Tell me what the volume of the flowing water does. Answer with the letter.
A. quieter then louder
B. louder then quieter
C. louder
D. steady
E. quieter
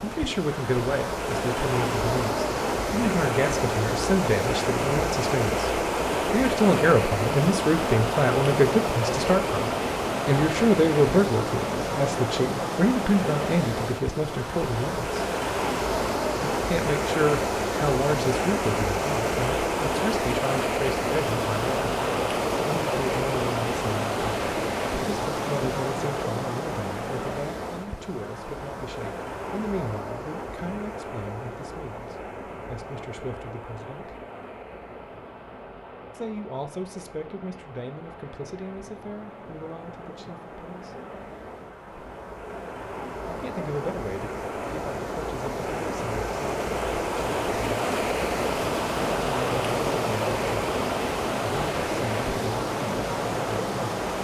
A.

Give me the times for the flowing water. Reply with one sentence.
The flowing water can be heard from 0.0 to 54.1 s.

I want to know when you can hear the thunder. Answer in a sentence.
The thunder can't be heard in this clip.